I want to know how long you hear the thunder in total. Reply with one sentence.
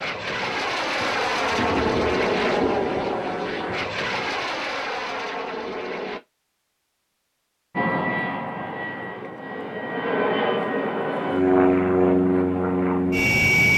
The thunder can be heard for 3 seconds in total.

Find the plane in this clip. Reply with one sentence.
The plane can be heard from 0.0 to 6.2 s and from 7.8 to 13.7 s.